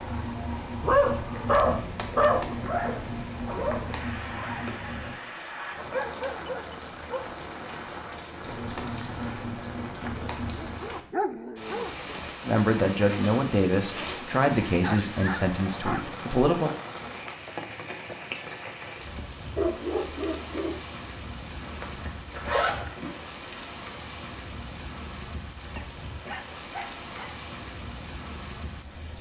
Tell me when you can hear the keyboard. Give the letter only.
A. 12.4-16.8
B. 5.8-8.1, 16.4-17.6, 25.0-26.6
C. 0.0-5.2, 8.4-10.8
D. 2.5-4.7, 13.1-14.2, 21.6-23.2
C.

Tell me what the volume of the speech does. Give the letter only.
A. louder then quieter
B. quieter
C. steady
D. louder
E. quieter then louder
B.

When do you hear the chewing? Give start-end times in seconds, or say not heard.
not heard.